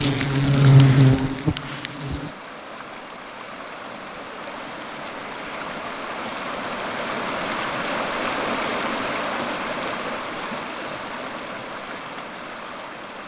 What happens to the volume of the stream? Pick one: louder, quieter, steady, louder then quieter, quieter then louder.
louder then quieter.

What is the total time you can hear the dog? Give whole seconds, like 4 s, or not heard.
not heard.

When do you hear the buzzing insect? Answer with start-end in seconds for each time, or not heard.
0.0-2.3.